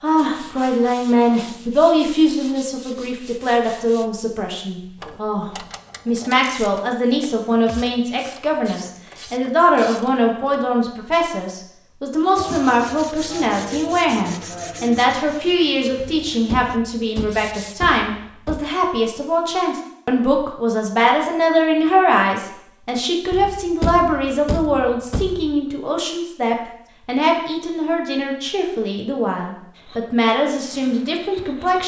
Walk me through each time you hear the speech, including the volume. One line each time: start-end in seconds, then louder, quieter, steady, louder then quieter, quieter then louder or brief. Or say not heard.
0.0-31.8 steady.